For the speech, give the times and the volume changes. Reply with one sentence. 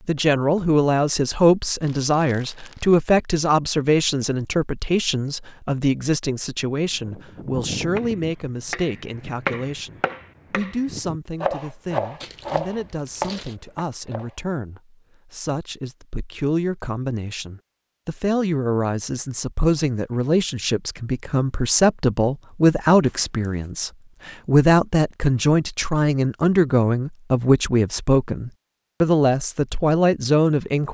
You can hear the speech from 0.1 to 30.8 s, getting quieter then louder.